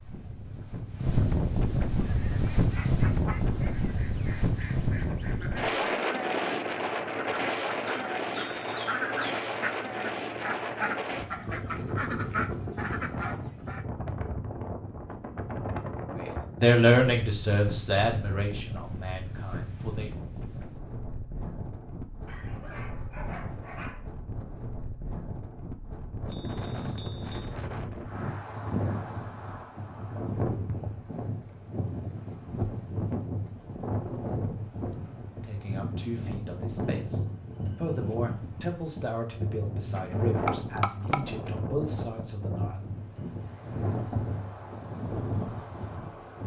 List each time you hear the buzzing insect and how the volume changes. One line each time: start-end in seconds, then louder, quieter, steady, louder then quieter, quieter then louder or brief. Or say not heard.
not heard.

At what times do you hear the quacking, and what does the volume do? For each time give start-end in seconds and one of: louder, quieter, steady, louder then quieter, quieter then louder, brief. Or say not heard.
1.9-13.8 louder.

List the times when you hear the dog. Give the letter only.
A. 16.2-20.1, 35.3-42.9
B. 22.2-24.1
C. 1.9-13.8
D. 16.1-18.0
B.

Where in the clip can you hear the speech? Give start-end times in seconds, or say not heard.
16.2-20.1, 35.3-42.9.